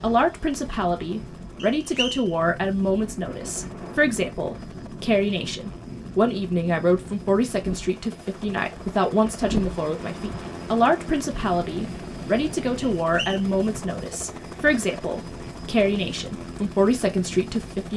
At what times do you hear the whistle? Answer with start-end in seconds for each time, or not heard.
1.6-2.3, 12.9-13.4.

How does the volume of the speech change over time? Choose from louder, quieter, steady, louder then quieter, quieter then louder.
steady.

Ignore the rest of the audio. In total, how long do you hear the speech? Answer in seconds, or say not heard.
18 s.